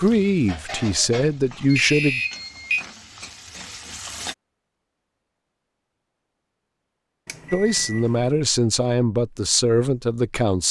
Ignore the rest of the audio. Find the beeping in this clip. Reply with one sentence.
The beeping can be heard from 1.7 to 2.9 s and from 7.2 to 8.3 s.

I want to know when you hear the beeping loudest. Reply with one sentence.
The loudest moment of the beeping is at 2 seconds.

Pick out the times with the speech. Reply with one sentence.
You can hear the speech from 0.0 to 2.2 s and from 7.5 to 10.6 s.